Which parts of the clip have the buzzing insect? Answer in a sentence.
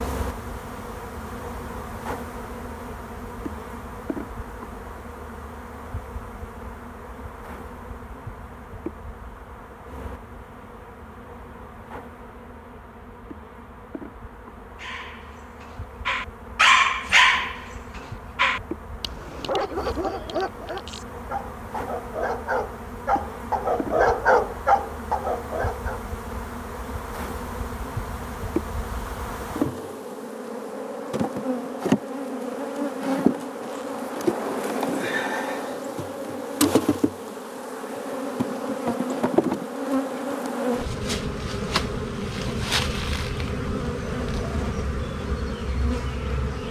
The buzzing insect can be heard from 0.0 to 46.6 s.